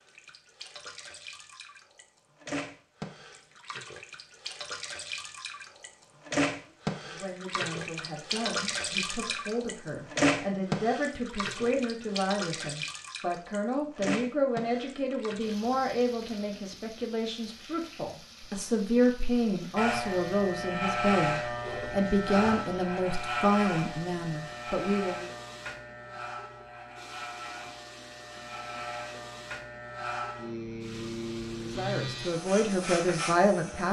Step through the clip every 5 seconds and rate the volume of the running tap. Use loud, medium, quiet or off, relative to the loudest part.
medium, loud, loud, quiet, quiet, quiet, quiet.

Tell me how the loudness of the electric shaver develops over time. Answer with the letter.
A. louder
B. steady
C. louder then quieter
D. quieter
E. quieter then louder
E.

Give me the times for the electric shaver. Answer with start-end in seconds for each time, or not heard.
19.8-33.8.